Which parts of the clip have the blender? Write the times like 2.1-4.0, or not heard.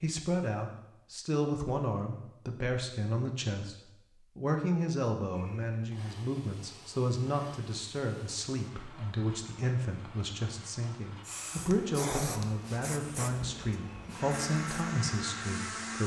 5.3-16.0.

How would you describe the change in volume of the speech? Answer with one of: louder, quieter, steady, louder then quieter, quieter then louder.
steady.